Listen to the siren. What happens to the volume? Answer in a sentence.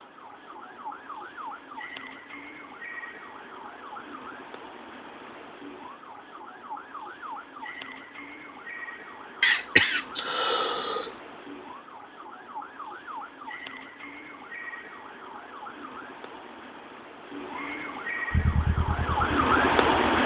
The volume of the siren goes up.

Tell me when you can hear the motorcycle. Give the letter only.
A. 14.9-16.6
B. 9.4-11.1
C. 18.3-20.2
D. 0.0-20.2
C.